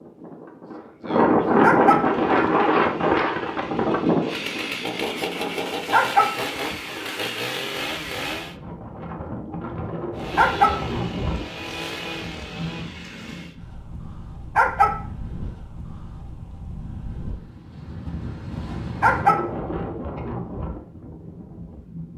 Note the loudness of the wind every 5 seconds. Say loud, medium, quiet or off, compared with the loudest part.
loud, quiet, quiet, quiet, quiet.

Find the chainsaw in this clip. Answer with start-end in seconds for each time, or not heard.
1.9-8.6, 10.2-13.6.